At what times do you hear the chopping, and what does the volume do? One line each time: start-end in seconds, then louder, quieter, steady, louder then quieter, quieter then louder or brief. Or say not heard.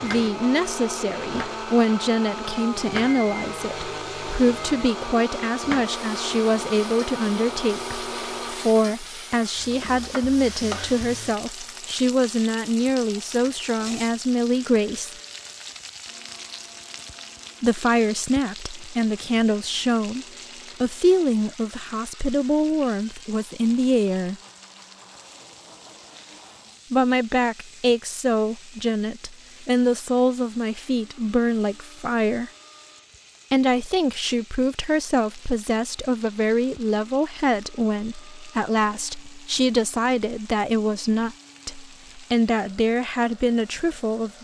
not heard.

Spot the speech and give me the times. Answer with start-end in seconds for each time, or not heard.
0.0-15.2, 17.6-24.4, 26.9-32.5, 33.5-44.3.